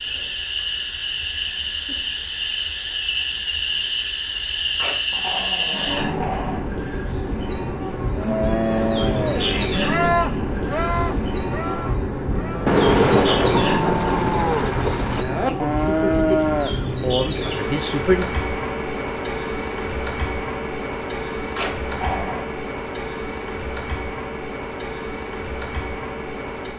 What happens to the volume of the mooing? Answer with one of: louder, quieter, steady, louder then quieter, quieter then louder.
quieter then louder.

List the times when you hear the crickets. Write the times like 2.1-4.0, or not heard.
0.0-26.7.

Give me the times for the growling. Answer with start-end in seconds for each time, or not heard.
4.8-6.7, 21.6-22.4.